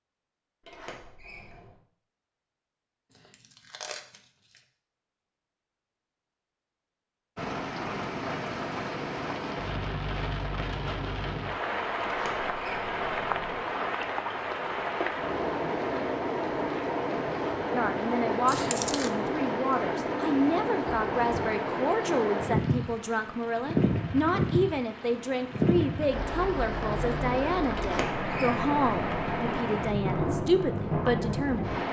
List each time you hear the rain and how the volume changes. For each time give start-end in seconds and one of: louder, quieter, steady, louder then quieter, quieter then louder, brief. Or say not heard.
7.3-31.8 steady.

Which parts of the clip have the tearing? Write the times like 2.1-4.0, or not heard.
3.1-4.6, 18.4-19.1.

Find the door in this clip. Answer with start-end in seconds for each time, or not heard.
0.6-1.8, 12.1-13.7, 27.8-29.6.